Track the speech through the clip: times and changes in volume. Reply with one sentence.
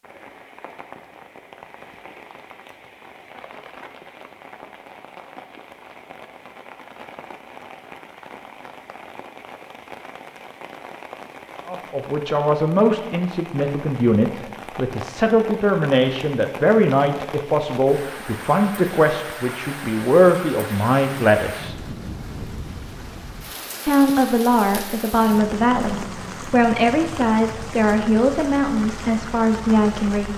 The speech can be heard from 11.7 to 21.8 s, at a steady volume; and from 23.9 to 30.3 s, at a steady volume.